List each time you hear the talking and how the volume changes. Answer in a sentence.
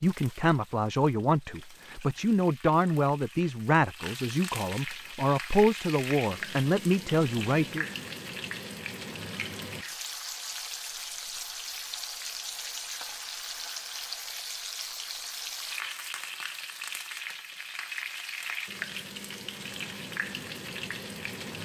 You can hear the talking from 0.0 to 7.8 s, at a steady volume.